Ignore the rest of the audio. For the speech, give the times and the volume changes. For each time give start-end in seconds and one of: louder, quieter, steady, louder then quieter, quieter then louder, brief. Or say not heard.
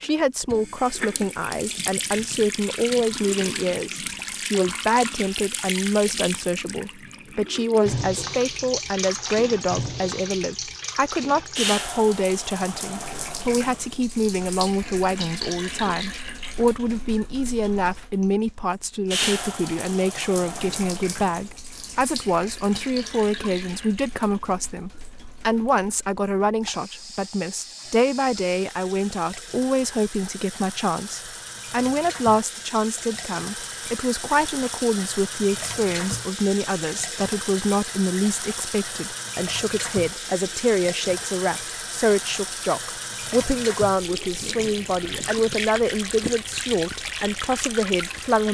0.0-48.4 steady.